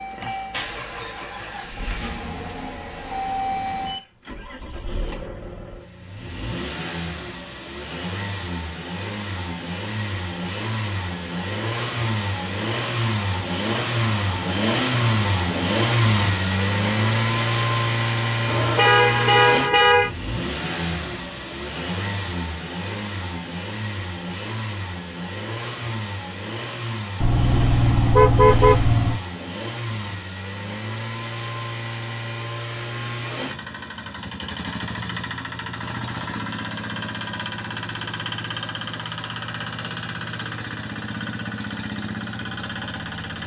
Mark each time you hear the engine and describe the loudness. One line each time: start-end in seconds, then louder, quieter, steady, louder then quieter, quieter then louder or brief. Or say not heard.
0.0-43.4 louder then quieter.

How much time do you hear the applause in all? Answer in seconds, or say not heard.
not heard.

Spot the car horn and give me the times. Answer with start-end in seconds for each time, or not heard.
18.4-20.1, 27.2-29.2.